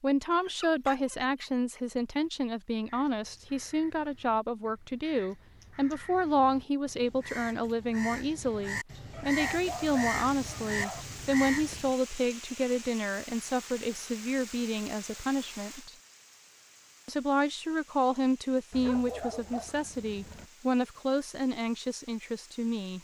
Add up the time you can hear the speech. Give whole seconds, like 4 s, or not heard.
22 s.